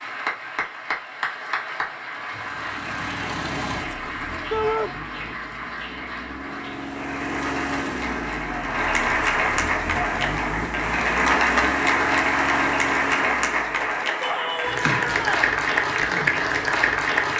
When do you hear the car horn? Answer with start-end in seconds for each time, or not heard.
not heard.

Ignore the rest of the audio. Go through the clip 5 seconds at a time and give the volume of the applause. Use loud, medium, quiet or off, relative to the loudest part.
medium, medium, loud, loud.